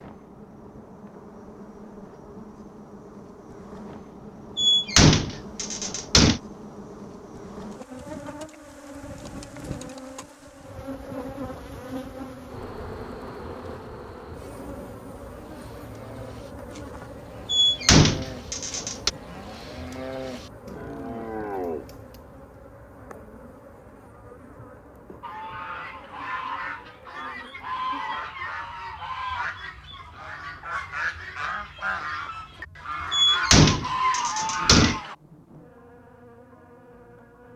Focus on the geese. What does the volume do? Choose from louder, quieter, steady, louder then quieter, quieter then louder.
louder.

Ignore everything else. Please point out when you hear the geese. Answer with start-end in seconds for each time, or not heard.
25.2-35.1.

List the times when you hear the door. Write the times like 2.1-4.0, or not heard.
4.5-6.4, 17.5-19.1, 33.1-35.0.